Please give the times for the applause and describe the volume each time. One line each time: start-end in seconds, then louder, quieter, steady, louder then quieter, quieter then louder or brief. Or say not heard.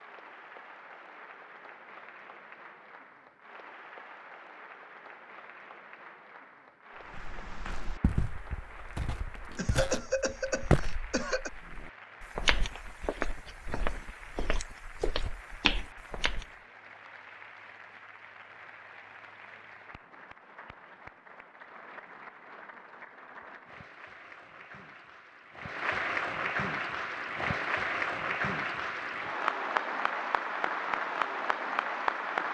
0.0-32.4 louder.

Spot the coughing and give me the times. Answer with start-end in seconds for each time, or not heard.
9.6-11.5.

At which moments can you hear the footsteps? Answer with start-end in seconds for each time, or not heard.
7.1-16.4.